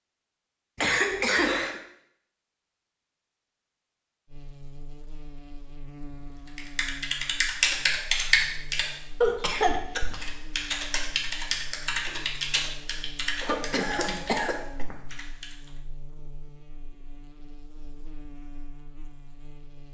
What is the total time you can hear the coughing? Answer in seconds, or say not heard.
3 s.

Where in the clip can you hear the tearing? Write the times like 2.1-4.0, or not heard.
not heard.